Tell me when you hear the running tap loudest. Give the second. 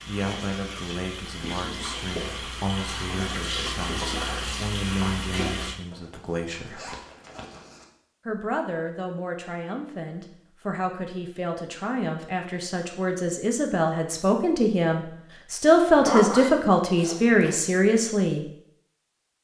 4 s.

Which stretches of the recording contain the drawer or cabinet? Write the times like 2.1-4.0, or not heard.
not heard.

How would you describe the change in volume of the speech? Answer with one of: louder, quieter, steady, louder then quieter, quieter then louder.
louder.